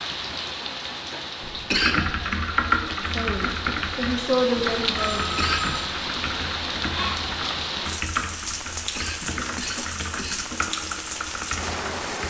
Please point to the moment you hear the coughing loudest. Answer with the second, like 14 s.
2 s.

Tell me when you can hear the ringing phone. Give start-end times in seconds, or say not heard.
5.0-5.9.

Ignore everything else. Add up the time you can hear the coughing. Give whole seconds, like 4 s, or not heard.
3 s.